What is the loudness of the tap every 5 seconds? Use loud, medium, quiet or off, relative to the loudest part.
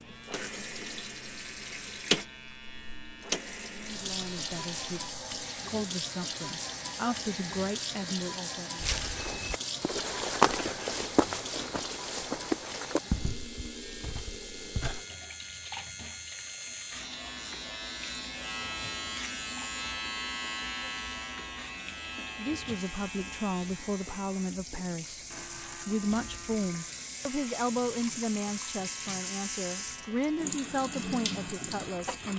loud, loud, medium, medium, medium, loud, loud.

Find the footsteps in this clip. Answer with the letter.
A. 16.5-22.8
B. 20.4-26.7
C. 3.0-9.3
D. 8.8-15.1
D.